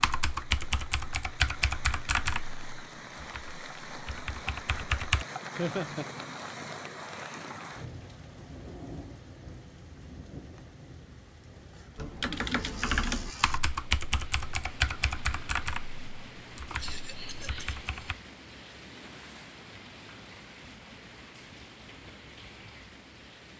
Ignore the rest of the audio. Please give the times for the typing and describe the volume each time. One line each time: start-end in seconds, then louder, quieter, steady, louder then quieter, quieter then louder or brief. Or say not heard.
0.0-5.2 quieter then louder
11.9-18.1 quieter.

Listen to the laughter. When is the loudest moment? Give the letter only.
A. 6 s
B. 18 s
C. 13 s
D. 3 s
A.